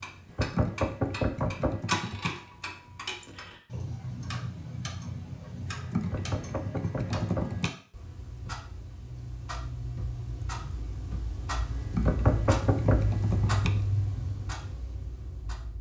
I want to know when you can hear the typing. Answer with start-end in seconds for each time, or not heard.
0.2-2.3, 5.7-7.7, 11.7-13.7.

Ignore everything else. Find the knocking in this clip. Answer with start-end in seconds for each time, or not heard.
0.3-1.8, 6.1-7.5, 12.1-13.0.